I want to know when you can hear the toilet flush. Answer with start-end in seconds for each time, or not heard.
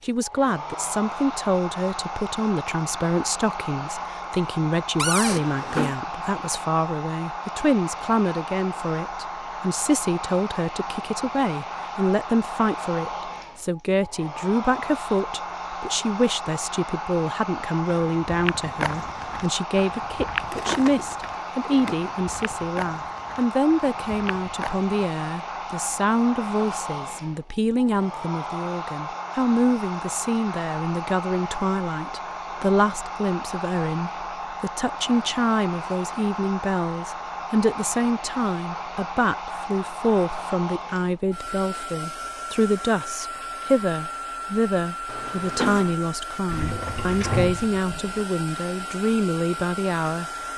5.2-6.0, 45.0-46.0.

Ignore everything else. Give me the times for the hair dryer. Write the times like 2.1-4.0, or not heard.
0.0-50.5.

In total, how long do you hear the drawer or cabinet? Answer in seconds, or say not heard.
4 s.